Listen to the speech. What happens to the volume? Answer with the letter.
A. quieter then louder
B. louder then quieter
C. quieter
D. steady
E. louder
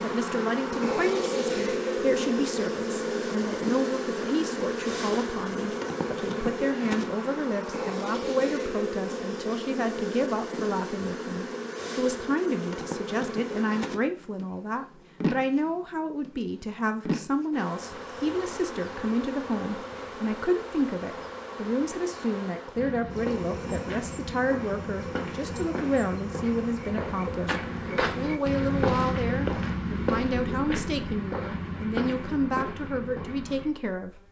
D.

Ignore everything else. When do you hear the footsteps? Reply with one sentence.
The footsteps can be heard from 22.7 to 33.7 s.